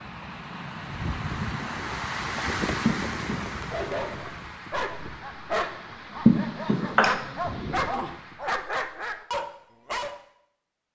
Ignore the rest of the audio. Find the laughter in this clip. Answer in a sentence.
The laughter can be heard from 2.9 to 3.6 s and from 6.2 to 7.1 s.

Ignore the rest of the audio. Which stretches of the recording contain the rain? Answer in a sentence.
You can hear the rain from 0.0 to 8.5 s.